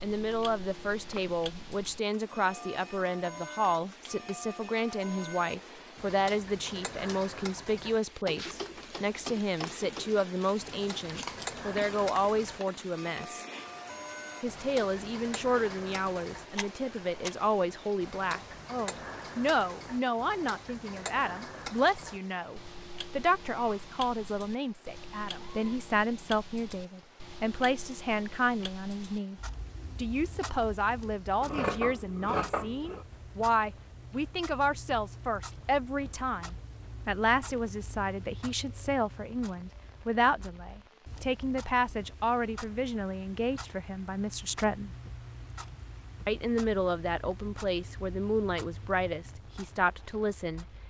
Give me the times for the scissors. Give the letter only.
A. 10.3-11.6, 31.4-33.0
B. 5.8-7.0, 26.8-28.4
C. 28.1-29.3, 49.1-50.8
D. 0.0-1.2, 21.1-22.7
A.